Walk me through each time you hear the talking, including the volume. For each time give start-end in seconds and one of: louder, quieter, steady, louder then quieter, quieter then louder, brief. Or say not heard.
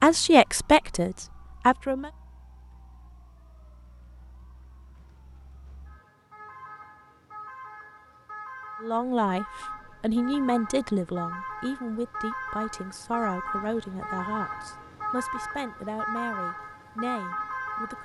0.0-2.1 brief
8.8-17.9 quieter.